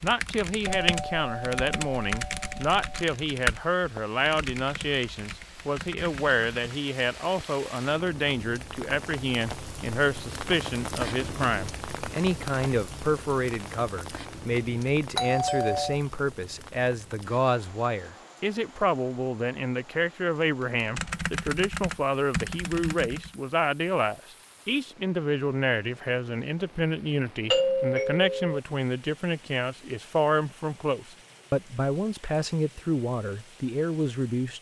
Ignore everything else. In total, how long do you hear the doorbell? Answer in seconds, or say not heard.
4 s.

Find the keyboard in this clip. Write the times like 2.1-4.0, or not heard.
0.0-6.8, 20.8-23.4.